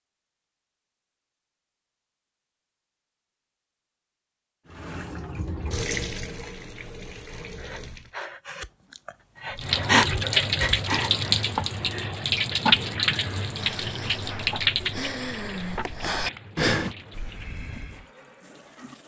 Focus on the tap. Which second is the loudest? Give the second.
13 s.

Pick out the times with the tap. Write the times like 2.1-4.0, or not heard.
4.7-8.2, 9.6-19.0.